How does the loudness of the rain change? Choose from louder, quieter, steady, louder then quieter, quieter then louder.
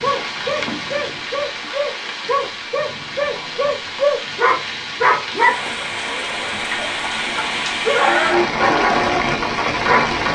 louder.